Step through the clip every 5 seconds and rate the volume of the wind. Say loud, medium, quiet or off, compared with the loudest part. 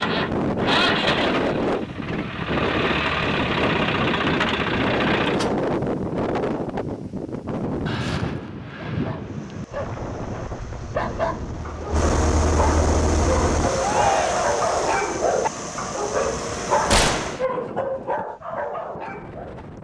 loud, loud, medium, quiet.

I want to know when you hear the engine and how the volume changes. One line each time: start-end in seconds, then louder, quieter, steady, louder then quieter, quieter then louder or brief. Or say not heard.
0.0-5.5 quieter then louder
9.2-17.4 louder then quieter.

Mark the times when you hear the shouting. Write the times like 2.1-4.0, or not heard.
13.8-14.6.